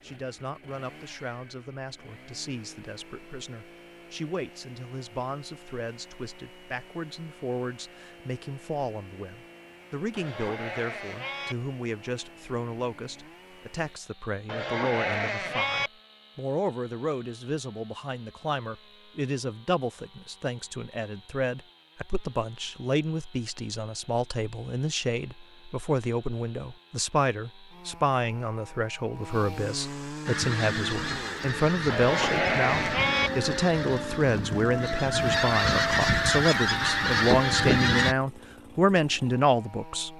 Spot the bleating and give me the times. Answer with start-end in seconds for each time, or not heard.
10.2-11.6, 14.4-15.9, 31.9-33.3.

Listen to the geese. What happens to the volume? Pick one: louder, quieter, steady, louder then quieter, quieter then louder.
louder.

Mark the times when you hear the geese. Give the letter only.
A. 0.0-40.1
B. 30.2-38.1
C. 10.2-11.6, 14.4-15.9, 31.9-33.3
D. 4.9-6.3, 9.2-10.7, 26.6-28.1
B.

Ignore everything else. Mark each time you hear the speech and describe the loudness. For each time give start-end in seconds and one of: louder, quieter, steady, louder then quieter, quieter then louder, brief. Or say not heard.
0.0-40.1 louder.